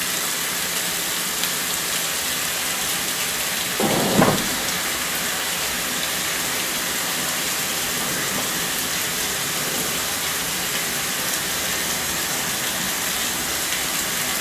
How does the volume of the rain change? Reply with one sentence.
The loudness of the rain stays about the same.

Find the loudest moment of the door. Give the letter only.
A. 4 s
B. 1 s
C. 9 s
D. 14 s
A.